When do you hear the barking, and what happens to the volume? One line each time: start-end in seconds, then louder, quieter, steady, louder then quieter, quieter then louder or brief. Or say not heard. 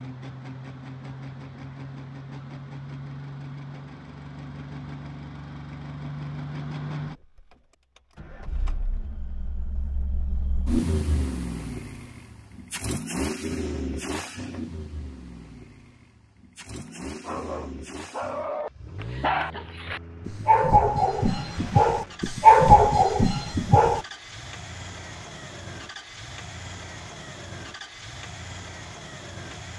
16.9-24.0 louder.